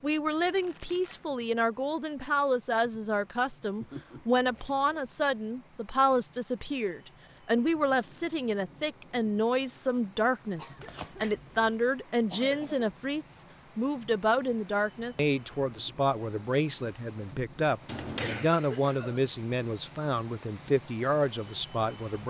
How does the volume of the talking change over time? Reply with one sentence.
The volume of the talking stays about the same.